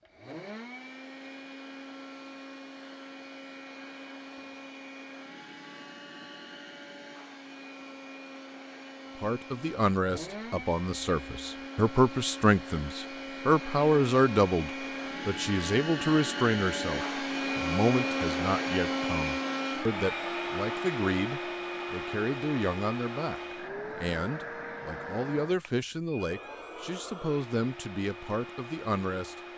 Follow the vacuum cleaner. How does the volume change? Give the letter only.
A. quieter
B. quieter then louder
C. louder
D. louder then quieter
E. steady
D.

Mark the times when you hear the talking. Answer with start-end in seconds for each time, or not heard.
9.2-29.4.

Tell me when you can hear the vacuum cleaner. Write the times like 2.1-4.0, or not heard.
0.0-29.5.